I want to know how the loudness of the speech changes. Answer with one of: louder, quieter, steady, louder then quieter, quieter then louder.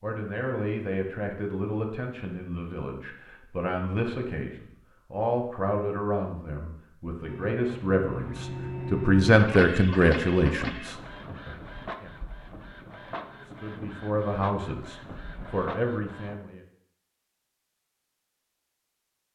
louder then quieter.